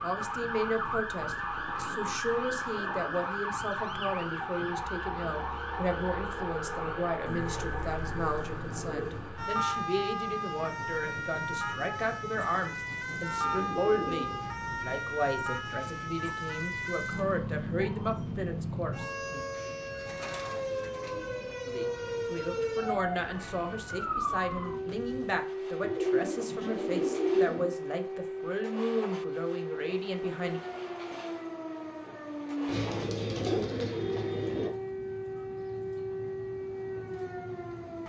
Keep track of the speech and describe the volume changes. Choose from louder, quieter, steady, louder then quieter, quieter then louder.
steady.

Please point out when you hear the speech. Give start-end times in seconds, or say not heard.
0.0-19.4, 21.6-30.6.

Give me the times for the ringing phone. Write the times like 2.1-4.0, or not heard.
not heard.